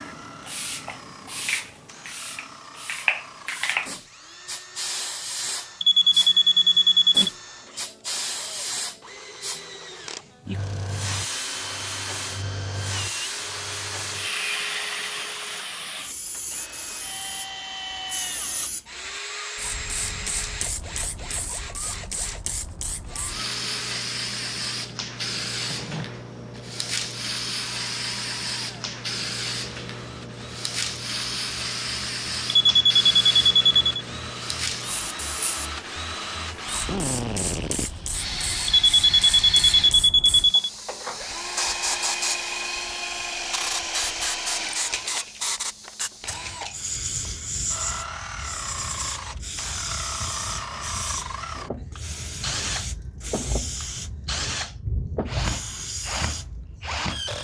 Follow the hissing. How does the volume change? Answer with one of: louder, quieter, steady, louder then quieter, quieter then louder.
steady.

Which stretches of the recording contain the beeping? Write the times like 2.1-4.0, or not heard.
5.8-7.3, 32.6-33.9, 38.6-40.7.